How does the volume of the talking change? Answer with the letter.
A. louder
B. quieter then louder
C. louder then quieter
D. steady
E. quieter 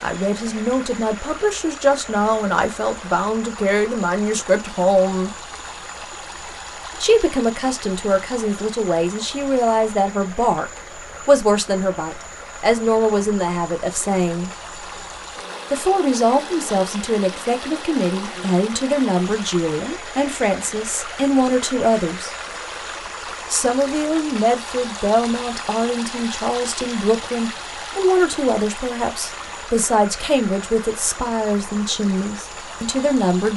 D.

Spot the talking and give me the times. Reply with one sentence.
You can hear the talking from 0.0 to 5.4 s, from 7.0 to 14.5 s, from 15.7 to 22.4 s and from 23.5 to 33.5 s.